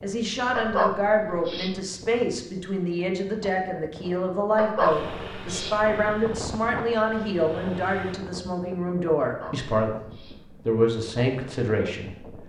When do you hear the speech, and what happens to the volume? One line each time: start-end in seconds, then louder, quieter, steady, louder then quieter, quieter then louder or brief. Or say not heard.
0.0-12.4 steady.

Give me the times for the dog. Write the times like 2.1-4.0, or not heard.
0.6-1.8, 4.5-5.8, 9.2-10.4.